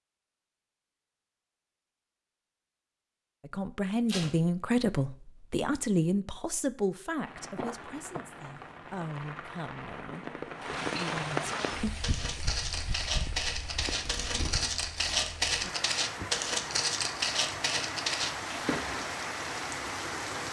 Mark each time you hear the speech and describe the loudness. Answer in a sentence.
You can hear the speech from 3.4 to 11.6 s, getting quieter.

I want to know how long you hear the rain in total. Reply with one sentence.
You can hear the rain for 13 seconds altogether.